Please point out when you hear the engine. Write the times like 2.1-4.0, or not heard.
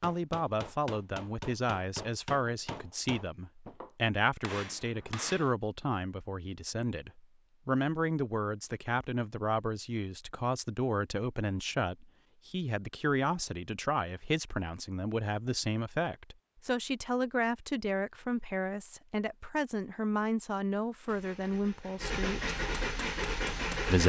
21.1-24.0.